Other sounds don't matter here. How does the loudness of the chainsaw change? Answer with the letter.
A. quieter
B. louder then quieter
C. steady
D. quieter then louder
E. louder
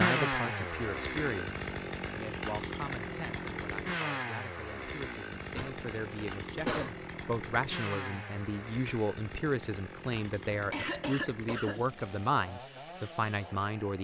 A.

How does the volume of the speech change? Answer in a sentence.
The volume of the speech goes down, then up.